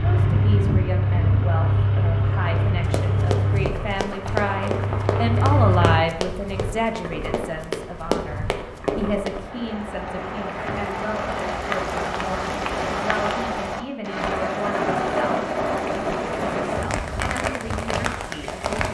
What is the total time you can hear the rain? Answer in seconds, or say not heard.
15 s.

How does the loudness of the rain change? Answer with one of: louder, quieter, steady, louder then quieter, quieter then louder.
louder.